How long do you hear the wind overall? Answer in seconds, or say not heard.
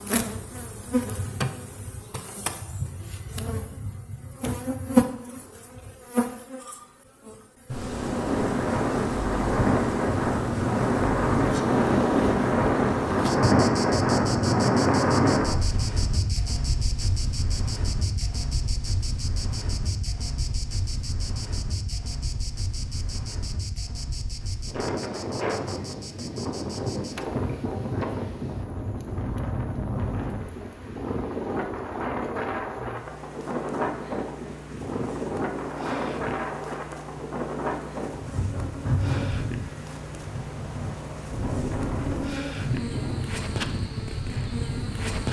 37 s.